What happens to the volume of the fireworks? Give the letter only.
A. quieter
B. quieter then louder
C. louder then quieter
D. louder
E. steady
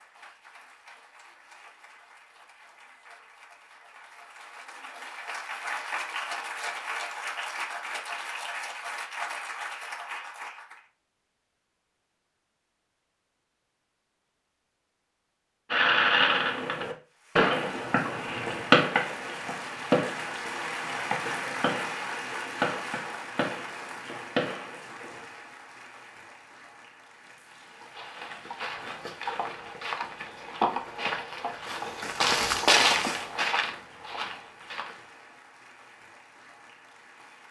A.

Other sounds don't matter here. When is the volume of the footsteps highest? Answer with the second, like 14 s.
33 s.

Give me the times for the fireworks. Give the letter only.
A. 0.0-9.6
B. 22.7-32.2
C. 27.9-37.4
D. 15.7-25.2
D.